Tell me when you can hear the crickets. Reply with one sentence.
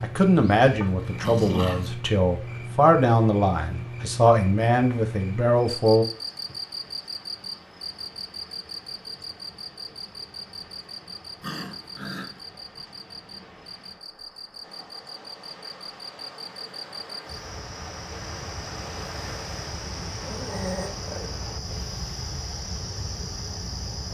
You can hear the crickets from 0.0 to 24.0 s.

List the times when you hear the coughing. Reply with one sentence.
The coughing can't be heard in this clip.